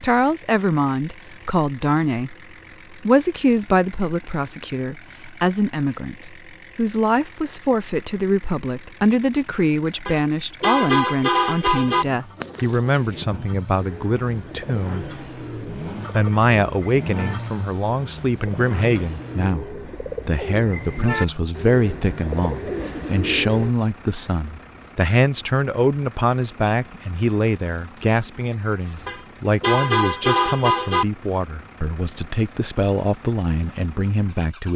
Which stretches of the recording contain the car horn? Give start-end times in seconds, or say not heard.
10.1-12.1, 29.1-31.1.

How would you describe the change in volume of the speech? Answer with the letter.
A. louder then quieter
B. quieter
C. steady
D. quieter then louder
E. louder
C.